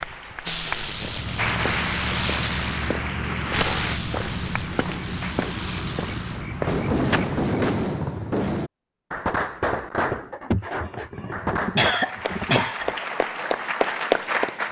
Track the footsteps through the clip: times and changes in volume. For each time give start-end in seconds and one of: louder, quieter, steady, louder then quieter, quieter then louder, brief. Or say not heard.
0.8-7.8 steady.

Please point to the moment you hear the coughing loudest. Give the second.
12 s.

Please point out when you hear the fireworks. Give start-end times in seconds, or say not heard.
0.5-11.9.